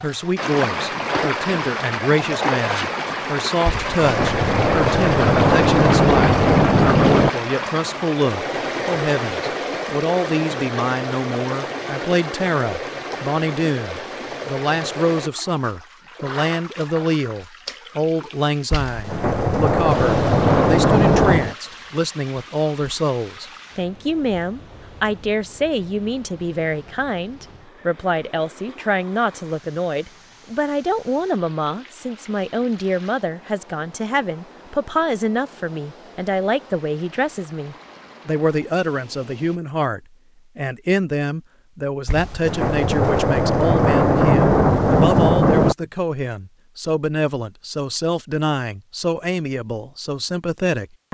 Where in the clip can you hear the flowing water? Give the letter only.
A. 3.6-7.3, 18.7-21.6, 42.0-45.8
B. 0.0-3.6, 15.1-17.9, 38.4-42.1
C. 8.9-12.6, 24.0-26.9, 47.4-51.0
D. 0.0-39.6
D.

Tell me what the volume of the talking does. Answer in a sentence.
The volume of the talking stays about the same.